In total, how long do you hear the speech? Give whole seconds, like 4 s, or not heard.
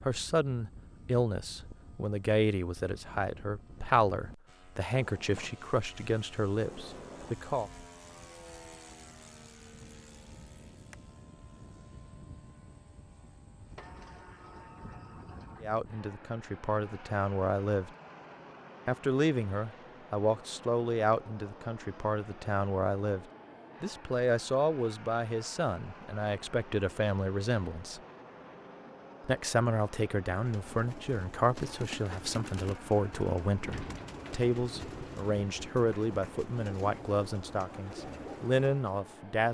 29 s.